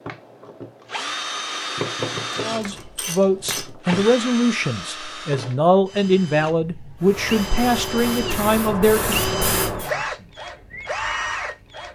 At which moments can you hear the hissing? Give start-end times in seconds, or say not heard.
7.0-9.9.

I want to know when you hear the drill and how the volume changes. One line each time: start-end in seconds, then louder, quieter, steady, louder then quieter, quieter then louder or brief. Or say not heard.
0.0-11.8 quieter then louder.